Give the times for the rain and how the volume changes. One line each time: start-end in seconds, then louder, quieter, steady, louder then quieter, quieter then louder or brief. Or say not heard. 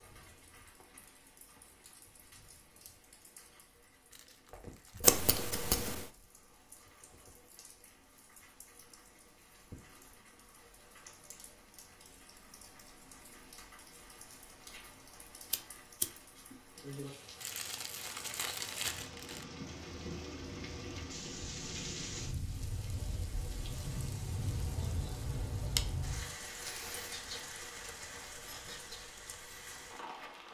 0.0-30.4 louder.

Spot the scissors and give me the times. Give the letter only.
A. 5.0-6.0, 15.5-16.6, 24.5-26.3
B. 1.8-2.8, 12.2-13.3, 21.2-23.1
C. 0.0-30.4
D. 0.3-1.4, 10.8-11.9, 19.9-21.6
A.